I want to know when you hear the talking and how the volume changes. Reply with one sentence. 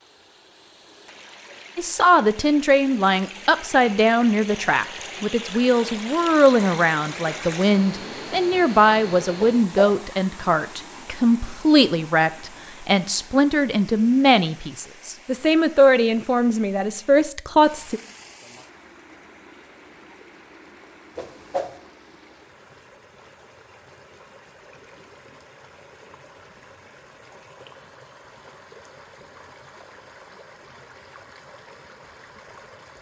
The talking can be heard from 1.8 to 18.0 s, at a steady volume.